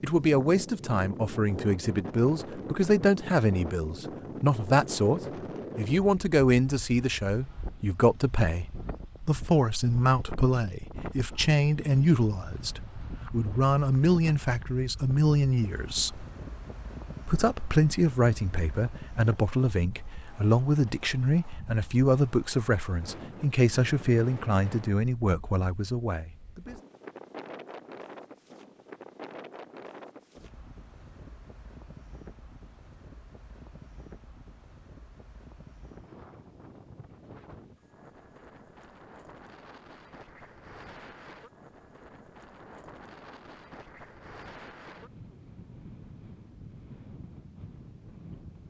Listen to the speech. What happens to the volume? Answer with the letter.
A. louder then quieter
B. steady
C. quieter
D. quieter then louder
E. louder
B.